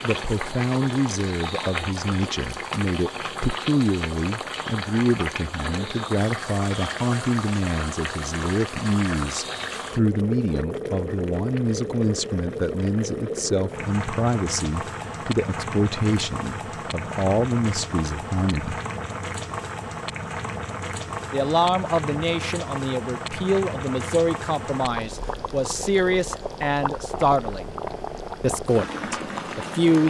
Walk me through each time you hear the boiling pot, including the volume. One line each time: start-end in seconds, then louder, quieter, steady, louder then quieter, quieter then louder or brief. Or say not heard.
0.0-30.0 steady.